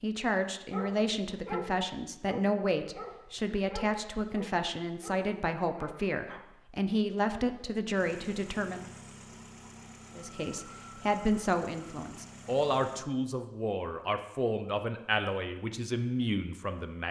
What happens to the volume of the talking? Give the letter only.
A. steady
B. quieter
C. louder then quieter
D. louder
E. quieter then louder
A.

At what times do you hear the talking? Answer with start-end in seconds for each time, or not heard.
0.0-8.8, 10.2-17.0.